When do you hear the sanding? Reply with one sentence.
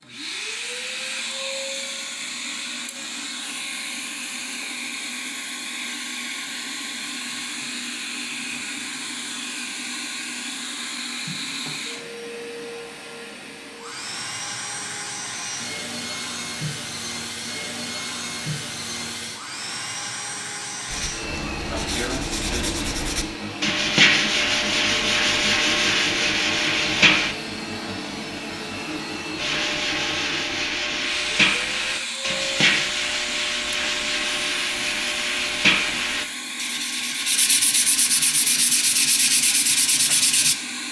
The sanding can be heard from 20.9 to 27.4 s and from 29.4 to 40.5 s.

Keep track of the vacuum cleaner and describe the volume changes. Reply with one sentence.
The volume of the vacuum cleaner stays about the same.